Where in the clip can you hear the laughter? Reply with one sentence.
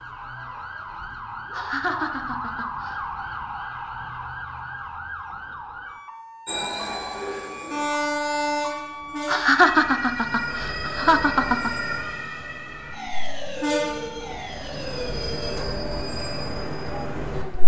You can hear the laughter from 1.5 to 3.0 s and from 9.2 to 11.7 s.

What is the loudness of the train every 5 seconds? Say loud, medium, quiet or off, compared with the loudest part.
off, loud, medium, loud.